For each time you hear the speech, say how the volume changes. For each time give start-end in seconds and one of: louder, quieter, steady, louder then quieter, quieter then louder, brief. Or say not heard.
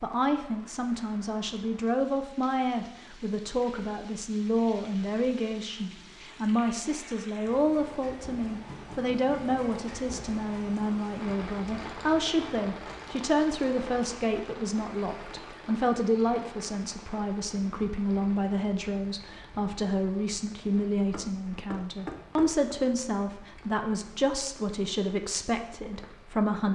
0.0-26.6 steady.